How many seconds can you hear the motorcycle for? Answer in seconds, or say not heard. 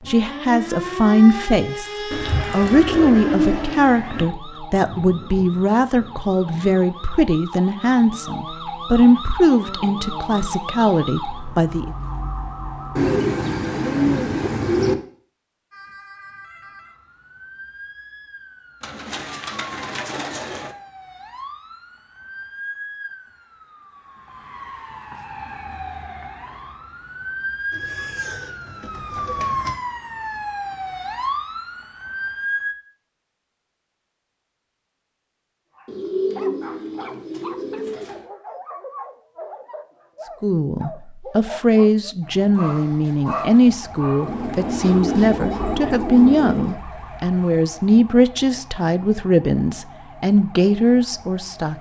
not heard.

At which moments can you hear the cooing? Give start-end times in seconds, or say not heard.
2.1-4.2, 12.9-14.9, 18.8-20.8, 27.7-29.8, 35.9-38.2, 44.2-46.8.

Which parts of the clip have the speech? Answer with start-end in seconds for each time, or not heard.
0.1-11.9, 40.4-51.7.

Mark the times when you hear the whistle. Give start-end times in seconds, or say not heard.
not heard.